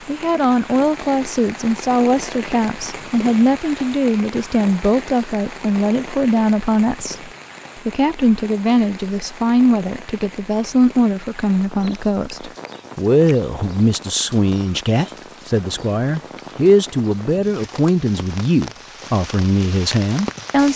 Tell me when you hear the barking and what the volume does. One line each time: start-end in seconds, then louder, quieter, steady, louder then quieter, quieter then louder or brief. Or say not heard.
not heard.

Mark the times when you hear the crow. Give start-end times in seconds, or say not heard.
not heard.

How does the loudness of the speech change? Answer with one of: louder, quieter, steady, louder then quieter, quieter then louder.
steady.